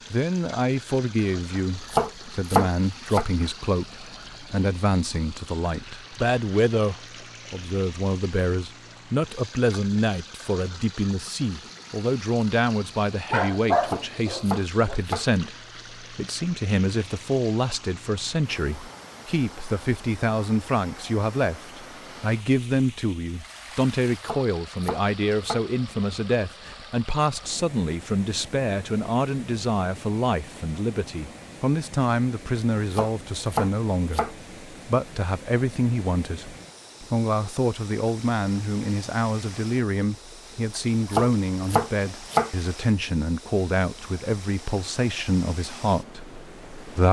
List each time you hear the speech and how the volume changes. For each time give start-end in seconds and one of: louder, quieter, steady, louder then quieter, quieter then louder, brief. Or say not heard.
0.1-47.0 steady.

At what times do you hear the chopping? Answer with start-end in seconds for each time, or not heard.
1.6-3.2, 13.8-15.2, 24.2-25.6, 32.9-34.4, 40.8-42.5.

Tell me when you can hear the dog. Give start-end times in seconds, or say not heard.
13.3-14.9.